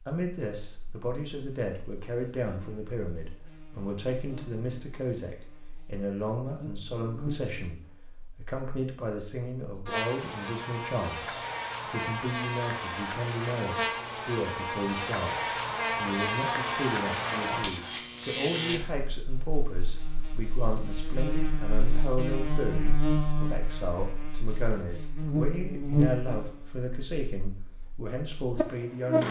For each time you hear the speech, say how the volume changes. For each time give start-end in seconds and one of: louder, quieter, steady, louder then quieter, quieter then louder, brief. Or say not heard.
0.1-29.2 steady.